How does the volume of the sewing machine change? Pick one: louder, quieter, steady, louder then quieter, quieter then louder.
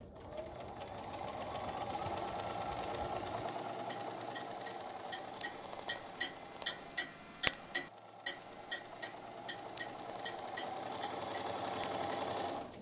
quieter then louder.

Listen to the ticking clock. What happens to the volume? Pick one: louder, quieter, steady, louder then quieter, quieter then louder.
louder then quieter.